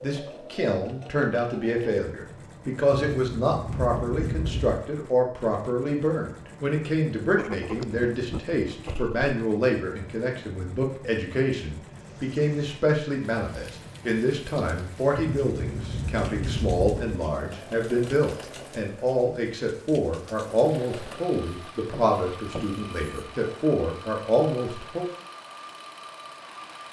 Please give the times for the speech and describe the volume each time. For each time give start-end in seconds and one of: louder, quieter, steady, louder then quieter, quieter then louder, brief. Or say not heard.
0.0-25.1 steady.